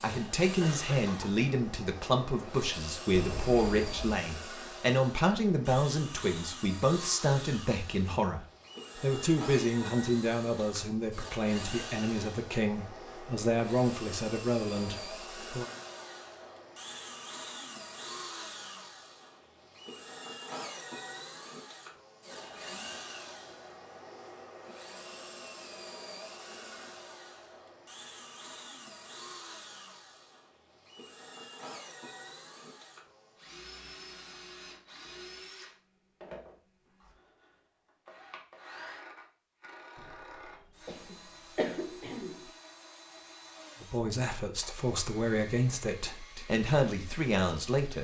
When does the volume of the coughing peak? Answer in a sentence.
The volume of the coughing peaks at 42 seconds.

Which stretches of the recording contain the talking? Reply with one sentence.
You can hear the talking from 0.0 to 15.7 s and from 43.8 to 47.9 s.